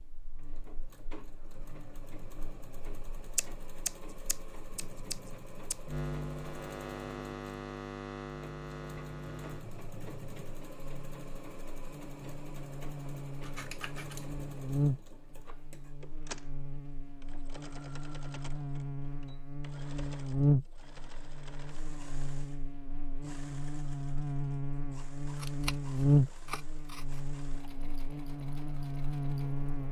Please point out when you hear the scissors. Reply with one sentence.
The scissors can be heard from 3.4 to 5.8 s, from 13.4 to 14.3 s and from 25.4 to 27.2 s.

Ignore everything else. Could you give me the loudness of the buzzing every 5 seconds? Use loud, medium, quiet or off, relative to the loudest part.
quiet, medium, medium, medium, loud, loud.